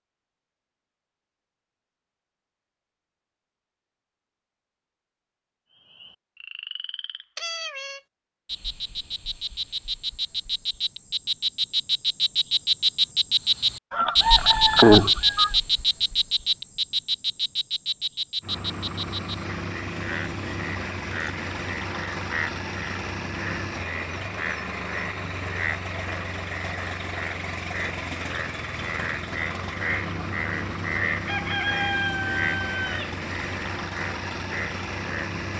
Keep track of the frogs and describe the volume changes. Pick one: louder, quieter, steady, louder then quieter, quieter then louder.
louder then quieter.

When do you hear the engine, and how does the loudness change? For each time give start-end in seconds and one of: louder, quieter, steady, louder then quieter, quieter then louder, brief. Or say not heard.
18.4-35.5 steady.